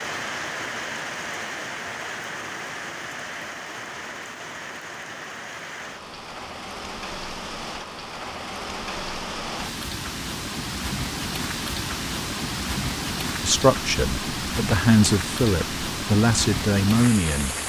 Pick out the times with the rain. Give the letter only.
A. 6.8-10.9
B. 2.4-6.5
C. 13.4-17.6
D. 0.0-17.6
D.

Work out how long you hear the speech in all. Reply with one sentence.
You can hear the speech for 4 seconds altogether.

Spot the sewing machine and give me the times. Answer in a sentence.
The sewing machine can't be heard in this clip.